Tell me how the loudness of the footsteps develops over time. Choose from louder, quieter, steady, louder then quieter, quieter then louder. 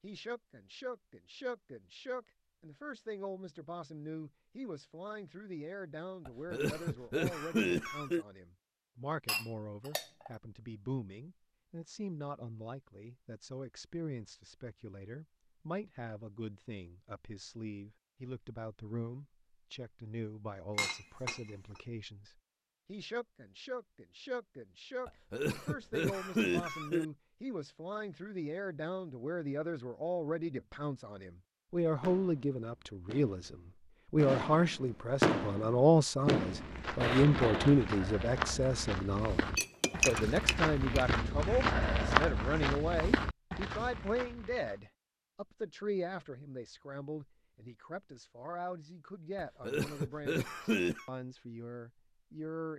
louder then quieter.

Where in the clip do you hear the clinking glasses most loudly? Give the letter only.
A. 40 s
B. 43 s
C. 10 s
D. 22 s
A.